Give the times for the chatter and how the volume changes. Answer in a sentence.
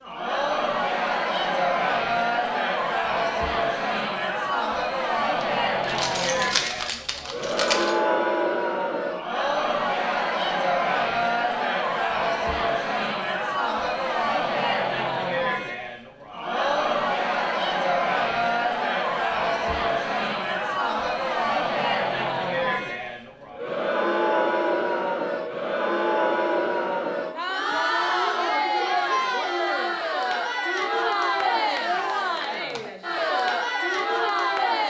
You can hear the chatter from 0.0 to 34.8 s, at a steady volume.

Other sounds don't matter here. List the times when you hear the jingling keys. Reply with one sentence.
You can hear the jingling keys from 5.4 to 8.0 s.